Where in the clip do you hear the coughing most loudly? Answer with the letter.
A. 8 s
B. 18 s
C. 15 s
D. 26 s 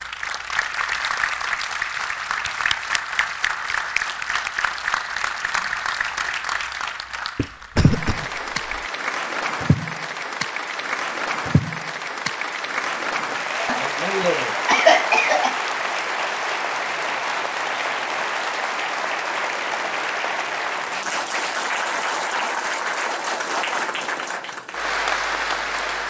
C.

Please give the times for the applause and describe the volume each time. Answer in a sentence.
The applause can be heard from 0.0 to 26.0 s, at a steady volume.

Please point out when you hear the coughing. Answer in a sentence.
The coughing can be heard from 7.3 to 8.8 s and from 13.6 to 15.6 s.